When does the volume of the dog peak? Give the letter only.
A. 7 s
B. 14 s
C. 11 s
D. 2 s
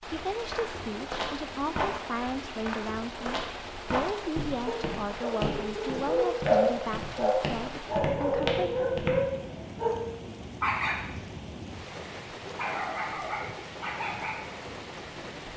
A.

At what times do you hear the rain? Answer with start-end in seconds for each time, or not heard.
0.0-15.5.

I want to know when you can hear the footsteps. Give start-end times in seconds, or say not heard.
0.1-9.2.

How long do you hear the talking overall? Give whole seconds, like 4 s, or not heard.
9 s.